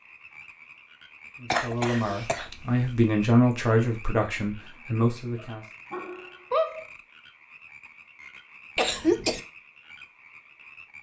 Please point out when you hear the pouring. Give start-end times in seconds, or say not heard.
not heard.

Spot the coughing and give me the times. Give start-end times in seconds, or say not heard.
1.5-3.0, 8.8-9.4.